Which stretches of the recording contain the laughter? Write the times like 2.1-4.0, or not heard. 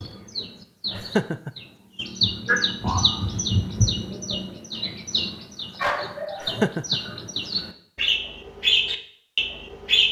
0.9-1.5, 6.4-7.0.